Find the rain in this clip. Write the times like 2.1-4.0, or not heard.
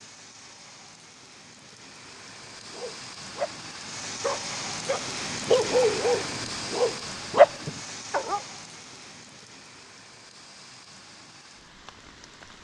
0.0-12.5.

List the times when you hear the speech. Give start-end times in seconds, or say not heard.
not heard.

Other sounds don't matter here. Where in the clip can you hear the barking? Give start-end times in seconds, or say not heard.
2.7-8.4.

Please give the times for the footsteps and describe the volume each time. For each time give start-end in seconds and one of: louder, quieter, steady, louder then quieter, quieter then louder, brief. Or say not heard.
not heard.